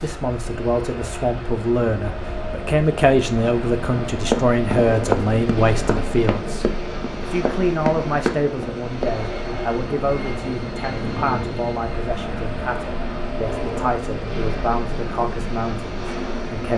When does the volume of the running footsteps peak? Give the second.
5 s.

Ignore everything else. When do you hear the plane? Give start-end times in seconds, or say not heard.
0.0-16.7.